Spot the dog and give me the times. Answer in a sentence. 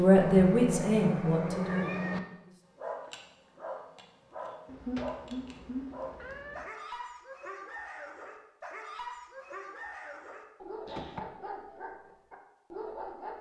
You can hear the dog from 2.8 to 13.3 s.